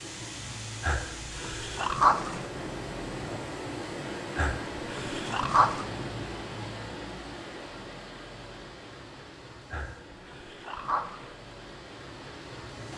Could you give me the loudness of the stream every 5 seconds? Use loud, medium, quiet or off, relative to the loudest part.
loud, loud, medium.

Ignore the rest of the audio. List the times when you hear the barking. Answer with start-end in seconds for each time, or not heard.
0.8-2.5, 4.3-5.8, 9.7-11.3.